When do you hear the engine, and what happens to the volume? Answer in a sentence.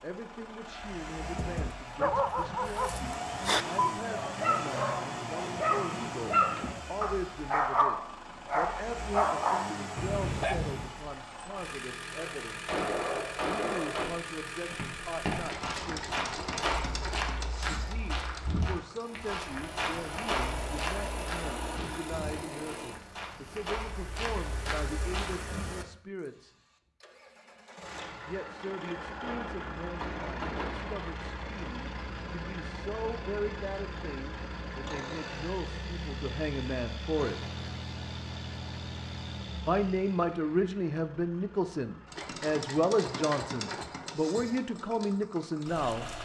The engine can be heard from 0.0 to 46.2 s, at a steady volume.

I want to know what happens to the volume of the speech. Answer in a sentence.
The volume of the speech goes up.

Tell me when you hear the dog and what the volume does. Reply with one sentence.
The dog can be heard from 1.4 to 10.9 s, at a steady volume.